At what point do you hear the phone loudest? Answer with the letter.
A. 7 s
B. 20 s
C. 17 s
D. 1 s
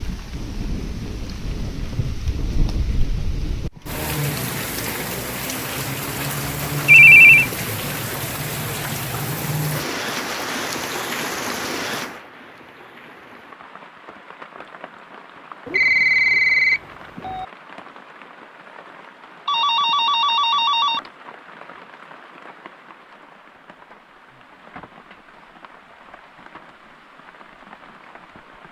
A.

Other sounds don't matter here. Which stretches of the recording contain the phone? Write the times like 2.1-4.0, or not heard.
6.8-7.5, 15.7-17.4, 19.4-21.0.